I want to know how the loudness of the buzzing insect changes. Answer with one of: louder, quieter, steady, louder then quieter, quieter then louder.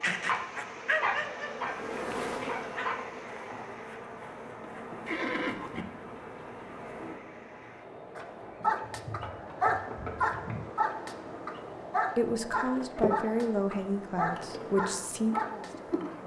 quieter then louder.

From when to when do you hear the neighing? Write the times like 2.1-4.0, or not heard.
5.0-5.8, 8.8-10.7.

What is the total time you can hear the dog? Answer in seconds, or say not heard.
11 s.